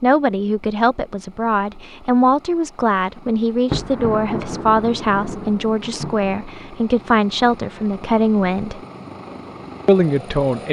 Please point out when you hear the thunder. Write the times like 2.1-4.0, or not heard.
3.6-6.5.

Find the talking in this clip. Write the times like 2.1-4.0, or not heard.
0.0-8.8, 9.8-10.6.